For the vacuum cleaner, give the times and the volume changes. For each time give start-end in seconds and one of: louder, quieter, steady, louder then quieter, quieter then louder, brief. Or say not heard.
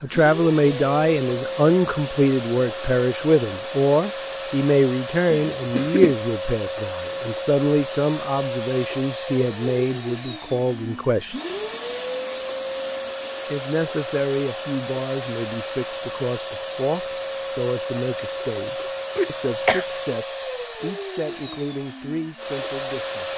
0.0-23.3 steady.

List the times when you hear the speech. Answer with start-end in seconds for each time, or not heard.
0.0-11.3, 13.5-23.3.